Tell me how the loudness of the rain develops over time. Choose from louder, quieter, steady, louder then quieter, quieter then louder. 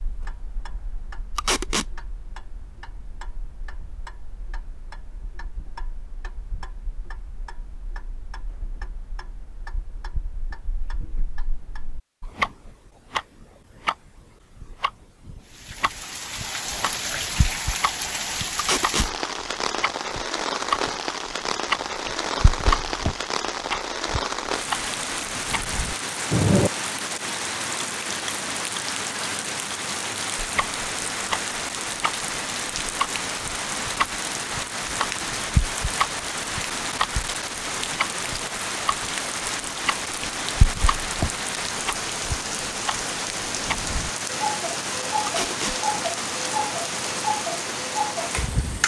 steady.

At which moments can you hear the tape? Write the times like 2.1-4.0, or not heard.
1.4-1.9, 18.6-19.1, 45.2-45.8.